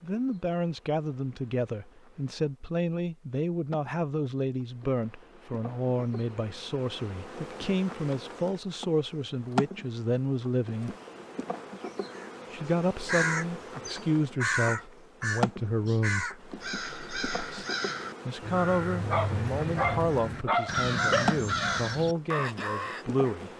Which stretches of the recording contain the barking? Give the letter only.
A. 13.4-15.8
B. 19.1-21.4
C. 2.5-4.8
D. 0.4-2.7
B.